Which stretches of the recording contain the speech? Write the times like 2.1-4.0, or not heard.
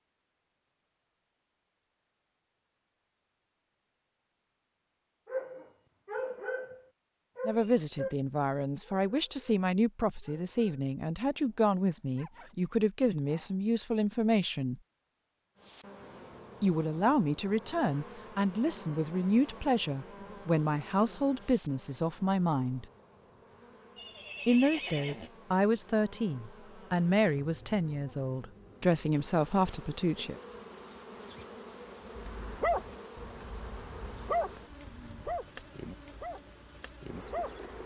7.5-14.8, 16.6-22.9, 24.4-30.4.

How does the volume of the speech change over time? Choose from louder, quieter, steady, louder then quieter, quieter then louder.
steady.